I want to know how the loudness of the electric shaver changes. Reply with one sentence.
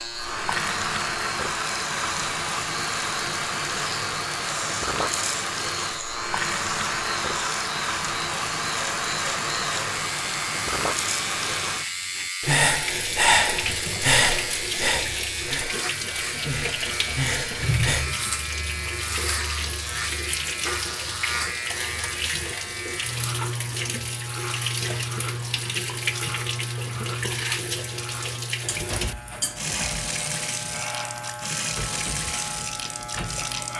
The loudness of the electric shaver stays about the same.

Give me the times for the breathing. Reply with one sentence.
The breathing can be heard from 12.4 to 18.1 s.